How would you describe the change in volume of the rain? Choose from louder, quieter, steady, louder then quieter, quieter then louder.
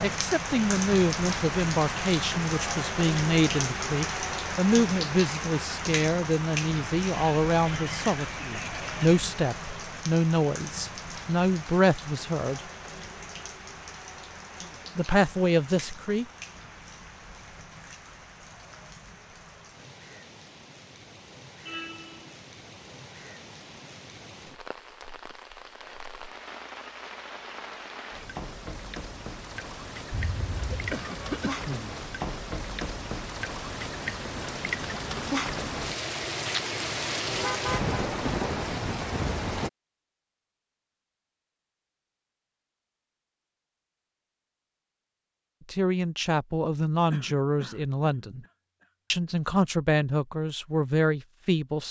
quieter then louder.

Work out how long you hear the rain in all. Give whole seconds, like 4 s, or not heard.
40 s.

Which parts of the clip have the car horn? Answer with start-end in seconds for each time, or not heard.
21.6-22.4, 37.2-38.0.